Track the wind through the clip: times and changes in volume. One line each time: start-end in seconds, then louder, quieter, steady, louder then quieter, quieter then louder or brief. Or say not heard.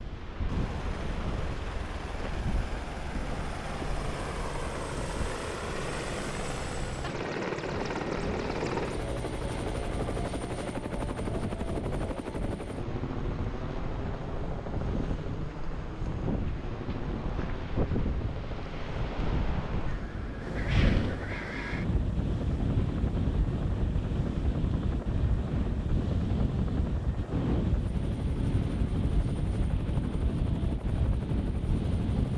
0.0-32.3 louder.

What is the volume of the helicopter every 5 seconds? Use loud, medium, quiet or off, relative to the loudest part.
medium, loud, loud, medium, medium, medium, medium.